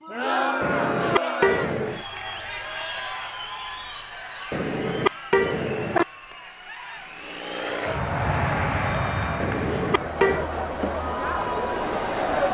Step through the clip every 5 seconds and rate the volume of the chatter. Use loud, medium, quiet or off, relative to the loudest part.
loud, medium, loud.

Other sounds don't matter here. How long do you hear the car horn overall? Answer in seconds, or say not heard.
4 s.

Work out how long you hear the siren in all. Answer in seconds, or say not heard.
not heard.